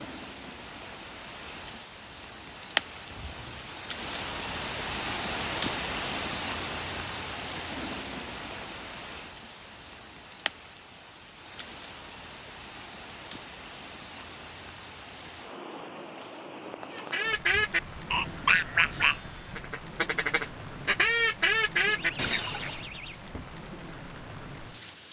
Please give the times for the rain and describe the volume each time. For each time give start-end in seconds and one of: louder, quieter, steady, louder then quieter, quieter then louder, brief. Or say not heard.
0.0-25.0 quieter.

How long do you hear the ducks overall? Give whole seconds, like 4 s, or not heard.
6 s.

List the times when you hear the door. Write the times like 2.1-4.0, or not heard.
3.1-3.7, 21.8-23.6.